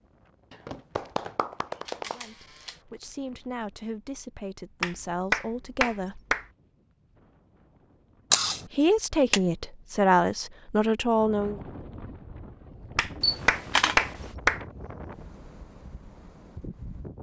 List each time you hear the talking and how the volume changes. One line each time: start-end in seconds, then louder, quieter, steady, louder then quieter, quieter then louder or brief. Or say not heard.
2.0-6.2 louder
8.7-11.6 brief.